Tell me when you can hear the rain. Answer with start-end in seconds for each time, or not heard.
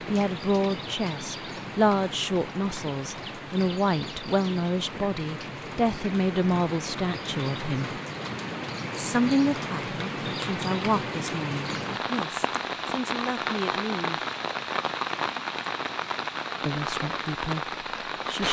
0.0-18.4.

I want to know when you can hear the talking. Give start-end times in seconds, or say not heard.
0.1-8.0, 8.9-14.2, 16.6-18.4.